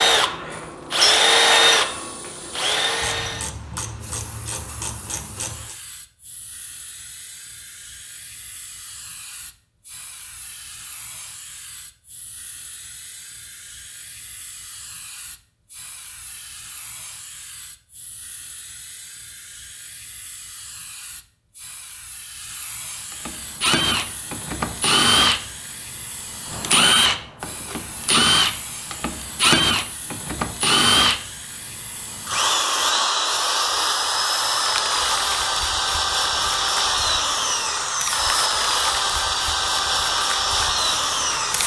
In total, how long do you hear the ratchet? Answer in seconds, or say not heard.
3 s.